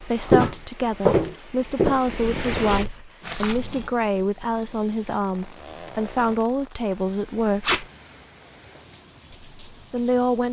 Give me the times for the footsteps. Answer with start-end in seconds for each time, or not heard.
0.1-3.9.